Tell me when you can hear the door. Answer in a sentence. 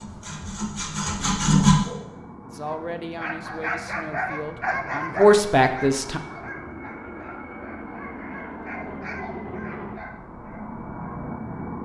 The door can't be heard in this clip.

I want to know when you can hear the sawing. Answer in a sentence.
You can hear the sawing from 0.0 to 1.8 s.